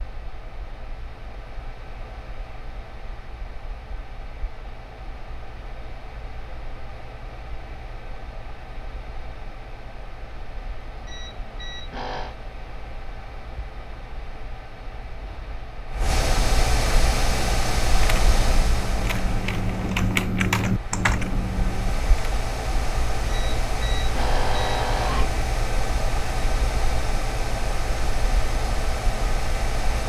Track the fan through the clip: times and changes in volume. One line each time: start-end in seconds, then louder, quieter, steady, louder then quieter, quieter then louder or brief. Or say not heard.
0.0-30.0 louder.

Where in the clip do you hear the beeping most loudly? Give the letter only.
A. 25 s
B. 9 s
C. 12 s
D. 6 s
A.